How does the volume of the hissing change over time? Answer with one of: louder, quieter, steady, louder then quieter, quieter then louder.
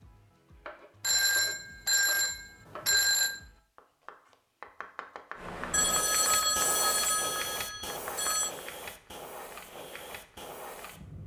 quieter.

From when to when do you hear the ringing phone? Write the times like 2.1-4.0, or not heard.
1.0-3.5, 5.7-8.5.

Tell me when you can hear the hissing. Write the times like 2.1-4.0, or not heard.
5.3-11.2.